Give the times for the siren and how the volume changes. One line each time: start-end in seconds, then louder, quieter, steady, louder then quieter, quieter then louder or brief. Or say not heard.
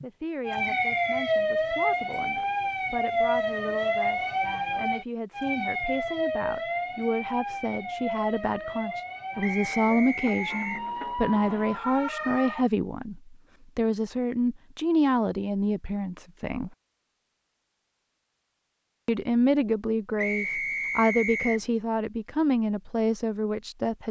0.0-12.7 quieter.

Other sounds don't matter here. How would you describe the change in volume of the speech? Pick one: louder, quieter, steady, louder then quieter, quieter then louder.
louder.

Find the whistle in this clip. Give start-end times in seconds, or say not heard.
0.7-1.1, 9.4-10.8, 20.1-21.6.